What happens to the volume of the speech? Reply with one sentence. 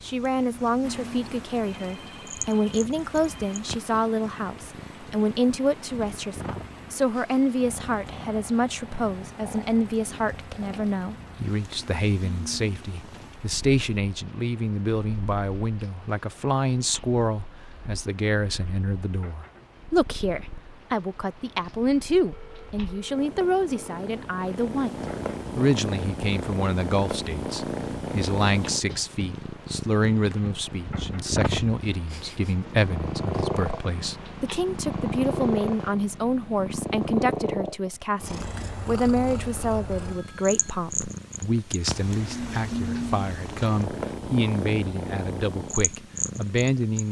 The loudness of the speech stays about the same.